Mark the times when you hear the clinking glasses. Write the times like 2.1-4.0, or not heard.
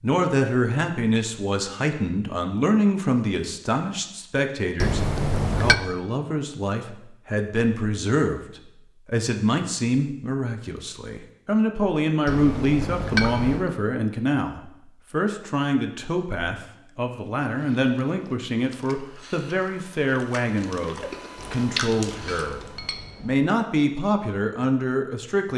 4.8-5.8, 12.2-13.7, 21.4-23.5.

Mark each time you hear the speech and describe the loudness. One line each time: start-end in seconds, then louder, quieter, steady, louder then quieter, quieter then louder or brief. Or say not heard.
0.0-25.5 steady.